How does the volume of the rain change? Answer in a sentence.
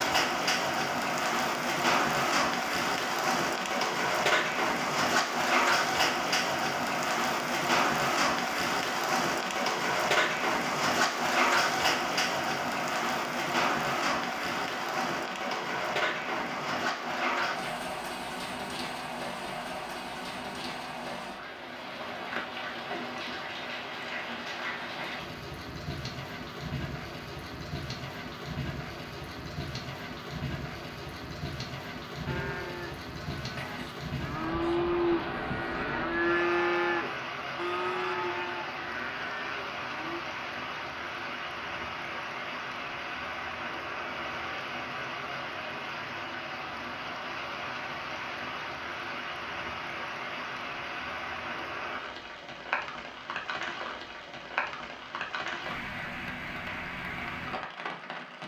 The loudness of the rain goes down.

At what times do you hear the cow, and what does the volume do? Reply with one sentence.
The cow can be heard from 32.2 to 40.2 s, getting louder then quieter.